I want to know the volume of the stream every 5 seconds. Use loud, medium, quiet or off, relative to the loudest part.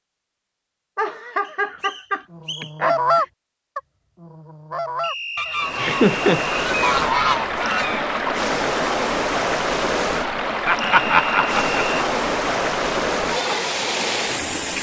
off, loud, loud.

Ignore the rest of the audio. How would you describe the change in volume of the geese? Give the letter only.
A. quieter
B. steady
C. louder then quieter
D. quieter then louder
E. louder
D.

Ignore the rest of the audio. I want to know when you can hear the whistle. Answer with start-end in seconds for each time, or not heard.
1.4-2.8, 5.0-6.5, 10.8-12.1.